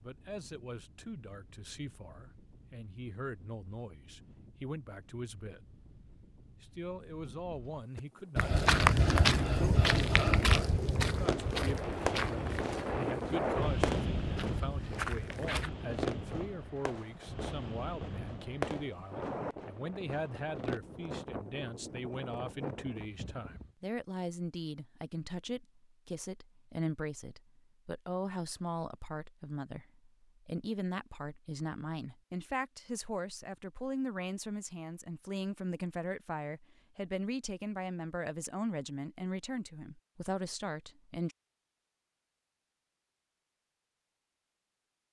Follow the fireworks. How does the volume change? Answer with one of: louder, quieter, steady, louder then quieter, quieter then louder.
quieter.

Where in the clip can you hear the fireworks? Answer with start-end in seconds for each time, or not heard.
11.2-20.8.